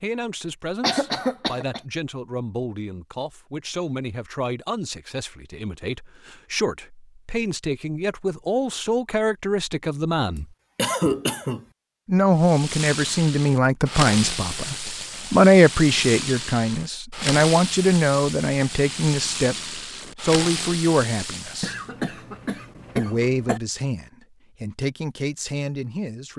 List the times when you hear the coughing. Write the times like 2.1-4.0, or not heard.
0.8-1.8, 10.3-11.7, 21.6-23.6.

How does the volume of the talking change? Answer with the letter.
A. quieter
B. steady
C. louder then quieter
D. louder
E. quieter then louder
C.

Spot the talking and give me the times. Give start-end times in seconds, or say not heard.
0.0-10.4, 12.1-21.8, 22.9-26.3.